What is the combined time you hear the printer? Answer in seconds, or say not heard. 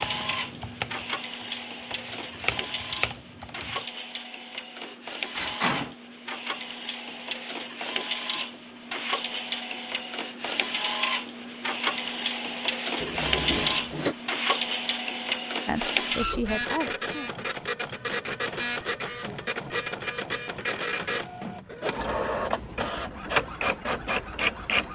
25 s.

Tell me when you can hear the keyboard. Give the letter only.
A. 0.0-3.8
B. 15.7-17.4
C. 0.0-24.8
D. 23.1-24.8
A.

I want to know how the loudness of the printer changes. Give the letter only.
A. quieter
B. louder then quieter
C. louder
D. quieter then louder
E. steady
C.